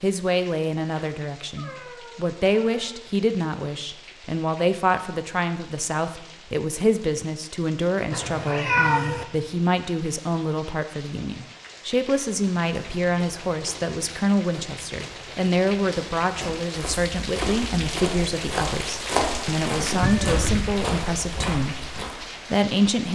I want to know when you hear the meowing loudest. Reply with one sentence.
The loudest moment of the meowing is at 9 seconds.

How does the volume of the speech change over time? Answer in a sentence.
The loudness of the speech stays about the same.